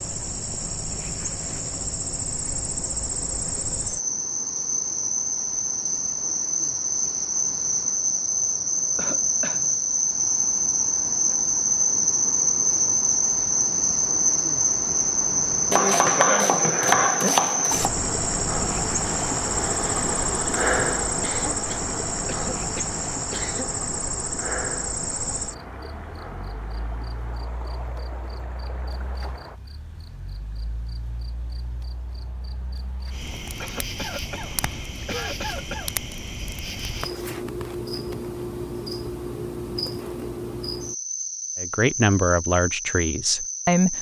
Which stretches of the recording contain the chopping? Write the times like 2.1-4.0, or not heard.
15.7-17.9.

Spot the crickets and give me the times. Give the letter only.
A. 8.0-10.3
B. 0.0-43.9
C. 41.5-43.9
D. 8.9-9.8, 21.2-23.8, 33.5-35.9
B.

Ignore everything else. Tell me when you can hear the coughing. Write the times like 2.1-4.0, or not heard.
8.9-9.8, 21.2-23.8, 33.5-35.9.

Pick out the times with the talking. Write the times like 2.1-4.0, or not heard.
41.5-43.9.